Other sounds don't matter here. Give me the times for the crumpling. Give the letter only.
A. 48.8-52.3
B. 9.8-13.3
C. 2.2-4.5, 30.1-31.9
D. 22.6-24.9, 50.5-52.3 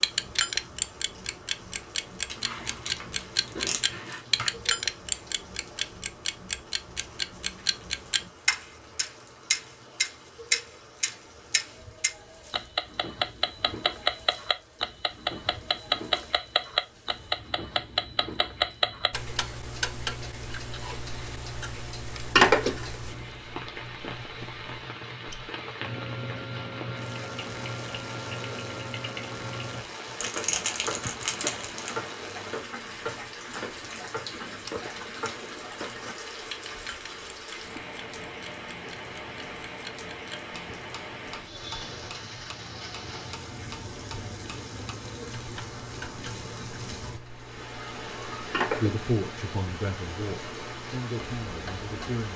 C.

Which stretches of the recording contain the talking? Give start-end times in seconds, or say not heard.
48.8-52.3.